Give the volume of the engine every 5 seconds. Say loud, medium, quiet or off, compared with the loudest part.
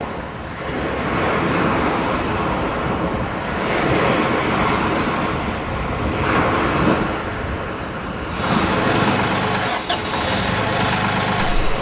off, loud, loud.